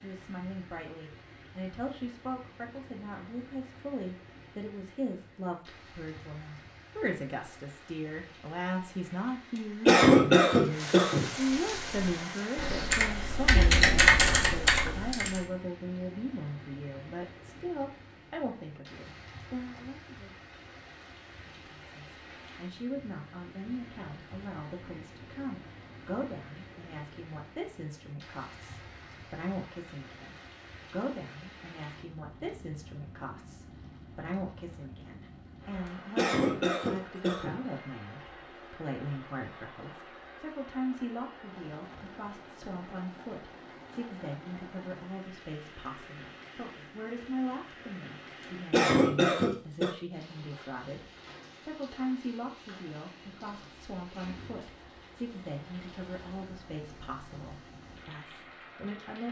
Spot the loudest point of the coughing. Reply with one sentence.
The loudest moment of the coughing is at 10 seconds.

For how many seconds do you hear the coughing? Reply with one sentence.
The coughing can be heard for 4 seconds in total.